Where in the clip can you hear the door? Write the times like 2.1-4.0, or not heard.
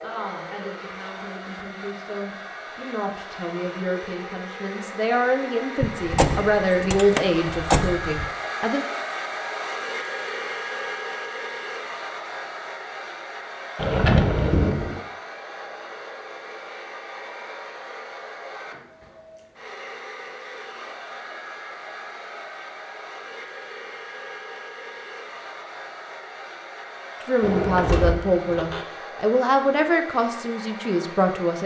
5.8-8.2, 13.8-15.0, 27.4-28.9.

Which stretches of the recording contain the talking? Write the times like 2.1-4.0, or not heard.
0.0-8.8, 27.2-31.6.